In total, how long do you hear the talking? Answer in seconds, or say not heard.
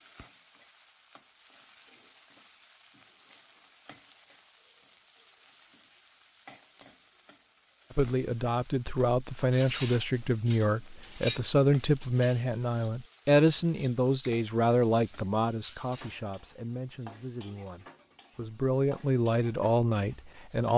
13 s.